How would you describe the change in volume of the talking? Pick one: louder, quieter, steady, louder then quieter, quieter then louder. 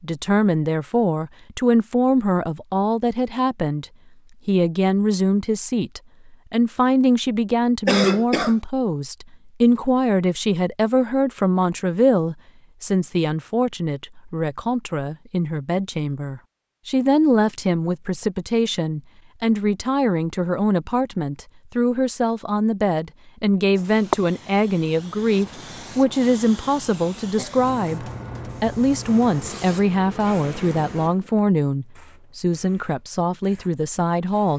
steady.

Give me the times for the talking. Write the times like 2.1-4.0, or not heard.
0.0-3.9, 4.5-34.5.